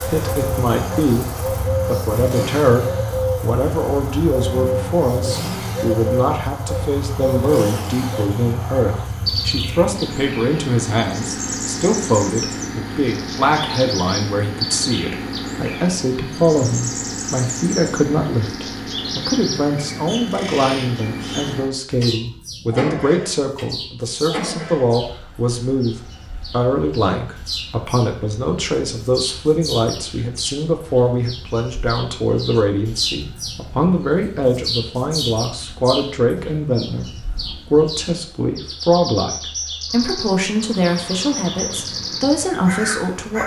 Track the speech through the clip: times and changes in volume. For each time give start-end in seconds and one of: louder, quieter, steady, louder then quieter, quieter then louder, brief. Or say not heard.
0.1-43.4 steady.